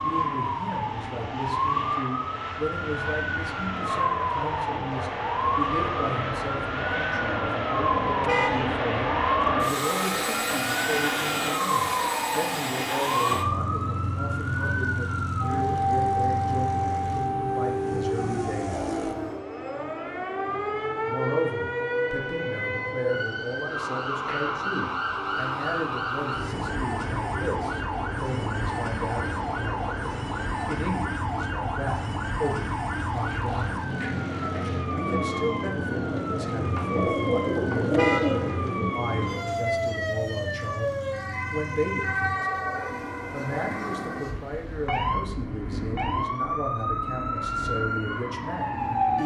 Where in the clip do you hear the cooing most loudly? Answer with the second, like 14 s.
38 s.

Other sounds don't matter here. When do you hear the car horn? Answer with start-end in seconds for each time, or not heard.
8.2-8.8, 37.9-38.6.